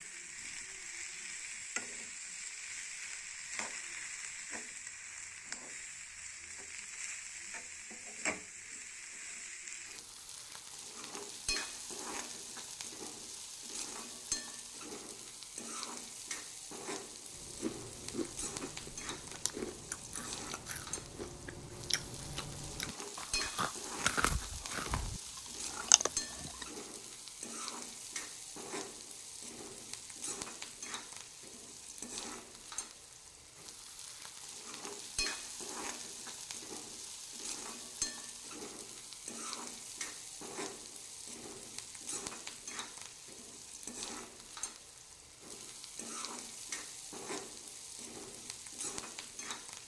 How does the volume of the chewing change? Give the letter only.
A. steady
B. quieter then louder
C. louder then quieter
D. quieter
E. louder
E.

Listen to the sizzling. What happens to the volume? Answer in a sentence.
The volume of the sizzling stays about the same.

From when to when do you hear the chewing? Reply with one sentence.
The chewing can be heard from 17.3 to 26.6 s.